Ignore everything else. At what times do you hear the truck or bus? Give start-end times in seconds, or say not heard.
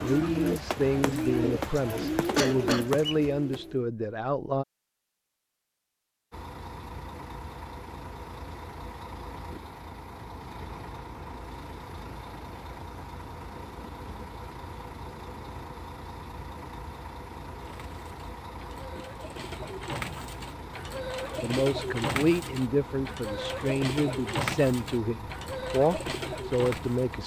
6.3-27.2.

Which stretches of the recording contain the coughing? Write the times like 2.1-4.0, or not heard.
1.8-3.0.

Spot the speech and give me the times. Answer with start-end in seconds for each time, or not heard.
0.0-4.7, 21.4-27.2.